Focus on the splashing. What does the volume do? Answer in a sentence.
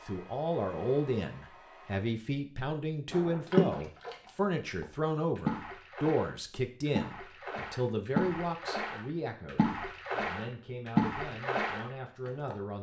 The loudness of the splashing goes down, then up.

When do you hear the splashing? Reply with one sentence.
The splashing can be heard from 3.1 to 12.6 s.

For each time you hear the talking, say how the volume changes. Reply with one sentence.
The talking can be heard from 0.0 to 12.7 s, getting quieter.